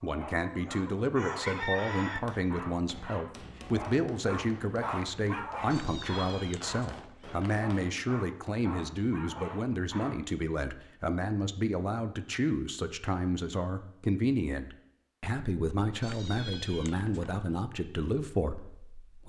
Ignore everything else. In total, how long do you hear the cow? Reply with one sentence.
The cow can't be heard in this clip.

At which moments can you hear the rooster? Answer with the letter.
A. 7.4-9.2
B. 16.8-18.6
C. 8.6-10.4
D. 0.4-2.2
D.